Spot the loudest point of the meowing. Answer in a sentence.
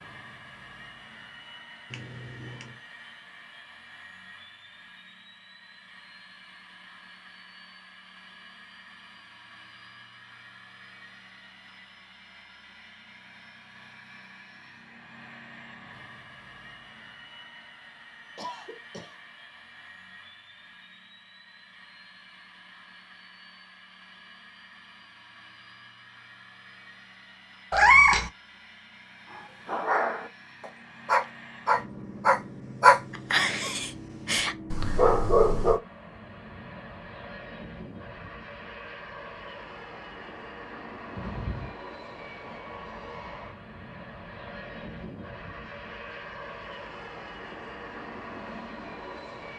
The volume of the meowing peaks at 28 seconds.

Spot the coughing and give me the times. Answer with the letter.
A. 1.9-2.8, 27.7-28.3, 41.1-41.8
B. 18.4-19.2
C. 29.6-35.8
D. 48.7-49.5
B.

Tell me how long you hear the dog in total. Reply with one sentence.
You can hear the dog for 6 seconds altogether.